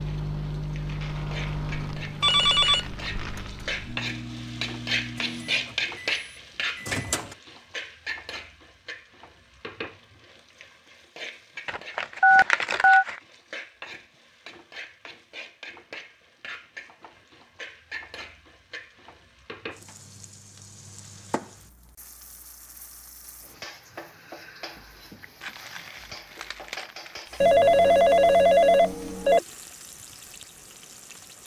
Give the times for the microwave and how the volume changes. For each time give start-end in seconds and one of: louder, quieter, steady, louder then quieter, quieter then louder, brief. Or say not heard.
0.0-7.3 quieter.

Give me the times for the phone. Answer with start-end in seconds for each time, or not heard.
2.2-2.9, 12.2-13.1, 27.4-29.4.